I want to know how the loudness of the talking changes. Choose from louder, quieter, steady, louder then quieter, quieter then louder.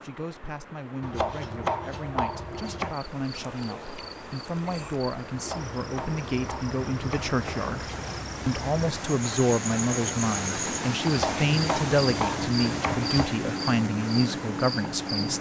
louder.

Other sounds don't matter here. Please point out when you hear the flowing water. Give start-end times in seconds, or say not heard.
0.0-15.3.